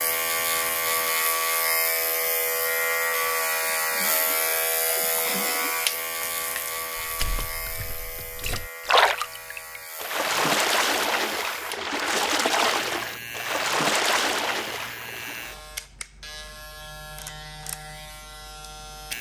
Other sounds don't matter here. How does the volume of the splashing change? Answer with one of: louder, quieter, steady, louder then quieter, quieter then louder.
louder.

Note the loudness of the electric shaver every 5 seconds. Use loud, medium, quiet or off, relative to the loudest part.
loud, medium, quiet, quiet.